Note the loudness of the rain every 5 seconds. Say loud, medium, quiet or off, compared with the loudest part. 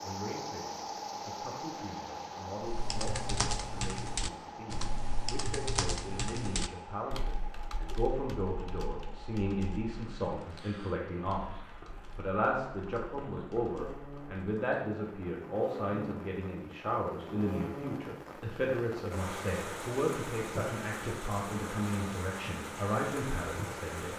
loud, medium, medium, loud, loud.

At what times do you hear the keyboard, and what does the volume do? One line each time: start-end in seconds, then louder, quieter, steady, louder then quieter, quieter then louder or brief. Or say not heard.
2.6-14.8 quieter.